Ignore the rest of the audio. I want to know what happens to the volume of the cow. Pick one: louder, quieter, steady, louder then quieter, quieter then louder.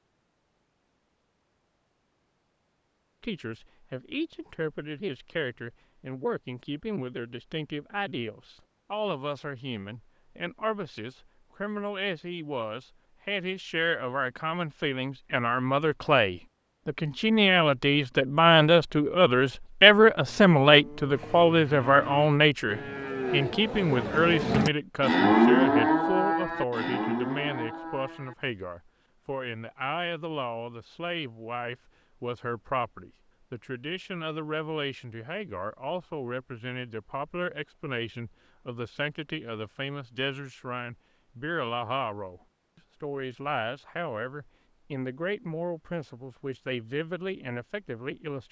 louder then quieter.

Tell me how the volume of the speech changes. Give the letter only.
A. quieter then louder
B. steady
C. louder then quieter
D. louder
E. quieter
C.